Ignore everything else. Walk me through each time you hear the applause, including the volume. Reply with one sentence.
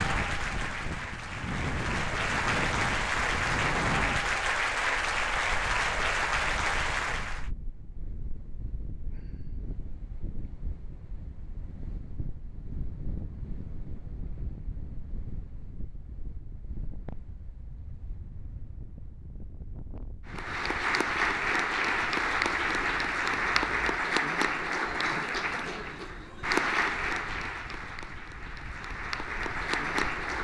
You can hear the applause from 0.0 to 7.5 s, getting louder; and from 20.2 to 30.3 s, getting quieter.